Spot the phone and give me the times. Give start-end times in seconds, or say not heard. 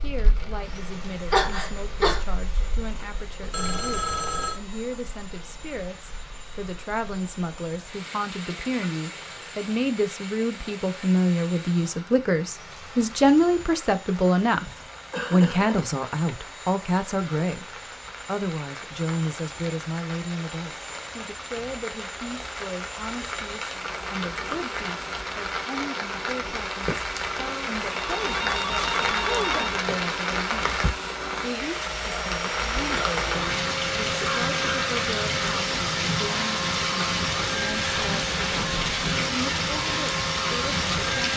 3.5-4.6, 27.4-29.8.